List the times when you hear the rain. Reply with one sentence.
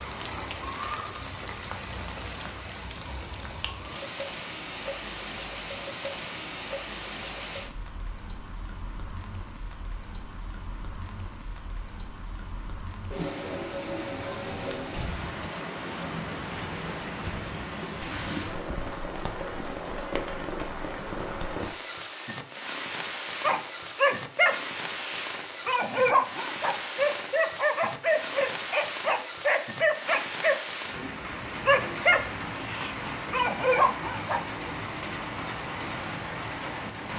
The rain can be heard from 0.0 to 37.1 s.